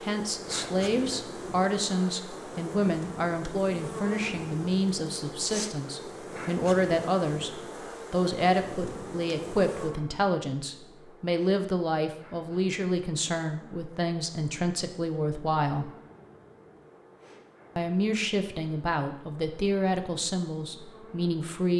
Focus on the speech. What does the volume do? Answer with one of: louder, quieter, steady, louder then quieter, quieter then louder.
steady.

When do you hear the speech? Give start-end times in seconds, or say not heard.
0.0-15.9, 17.8-21.7.